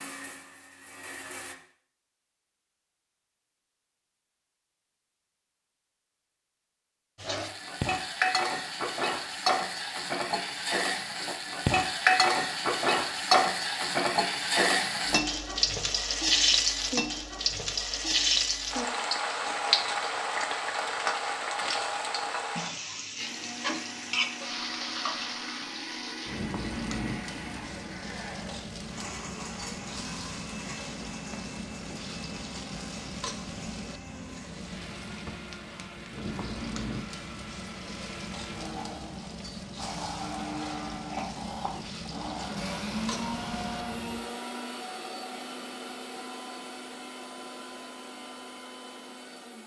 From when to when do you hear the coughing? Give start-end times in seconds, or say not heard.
not heard.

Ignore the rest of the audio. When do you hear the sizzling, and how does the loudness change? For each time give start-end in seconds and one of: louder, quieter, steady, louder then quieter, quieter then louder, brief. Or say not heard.
7.2-44.2 quieter.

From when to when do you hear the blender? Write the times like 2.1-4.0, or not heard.
0.0-1.6, 23.1-49.6.